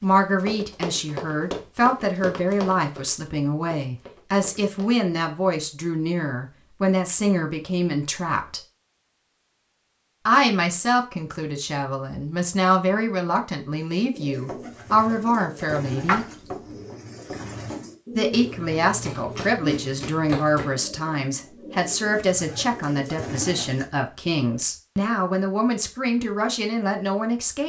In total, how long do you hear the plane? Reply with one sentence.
You can't hear the plane here.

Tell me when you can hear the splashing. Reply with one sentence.
The splashing can be heard from 16.1 to 16.8 s.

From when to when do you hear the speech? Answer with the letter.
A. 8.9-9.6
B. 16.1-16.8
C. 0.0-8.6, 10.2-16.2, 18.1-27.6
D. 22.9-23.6
C.